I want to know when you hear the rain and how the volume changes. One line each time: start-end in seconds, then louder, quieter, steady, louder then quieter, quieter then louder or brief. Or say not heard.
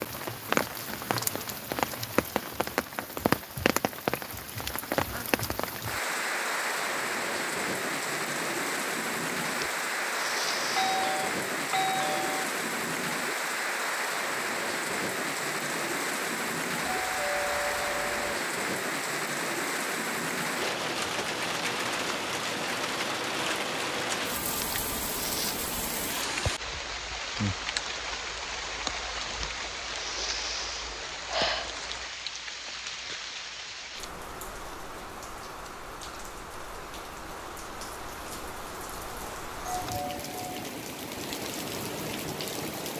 0.0-42.9 quieter.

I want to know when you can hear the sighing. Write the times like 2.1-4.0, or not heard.
9.4-11.1, 24.4-25.6, 29.2-31.7.